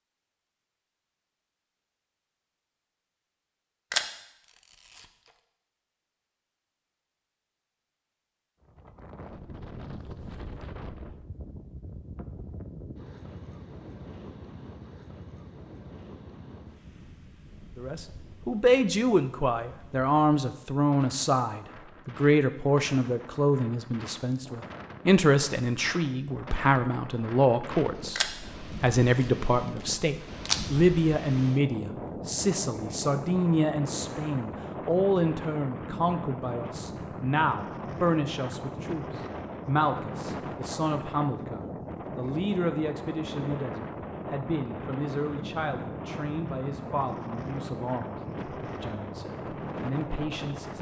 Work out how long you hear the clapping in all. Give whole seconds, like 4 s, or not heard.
not heard.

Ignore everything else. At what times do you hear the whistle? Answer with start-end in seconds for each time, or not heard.
not heard.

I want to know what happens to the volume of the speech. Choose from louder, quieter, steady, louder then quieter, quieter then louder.
quieter.